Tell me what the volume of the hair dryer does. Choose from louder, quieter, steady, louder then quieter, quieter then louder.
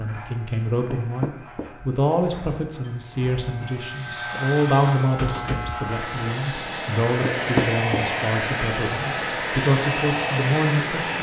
louder.